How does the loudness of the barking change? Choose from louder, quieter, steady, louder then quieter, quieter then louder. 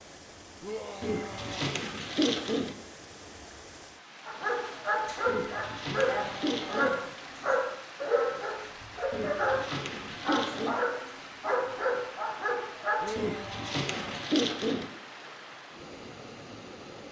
steady.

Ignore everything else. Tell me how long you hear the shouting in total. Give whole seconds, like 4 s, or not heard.
4 s.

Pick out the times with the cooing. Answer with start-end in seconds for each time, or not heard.
1.0-2.8, 5.2-7.0, 9.1-10.8, 13.2-14.9.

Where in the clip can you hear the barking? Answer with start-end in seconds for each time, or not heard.
4.2-13.2.